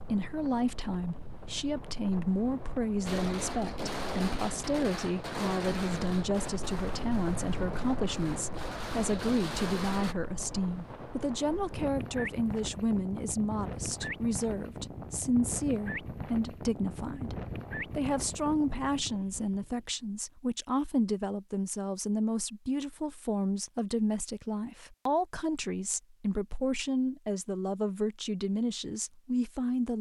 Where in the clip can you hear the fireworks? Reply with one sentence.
The fireworks can be heard from 3.0 to 10.2 s.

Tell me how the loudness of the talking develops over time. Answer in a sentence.
The volume of the talking stays about the same.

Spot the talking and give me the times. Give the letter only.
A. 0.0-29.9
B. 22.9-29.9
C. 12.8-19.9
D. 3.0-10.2
A.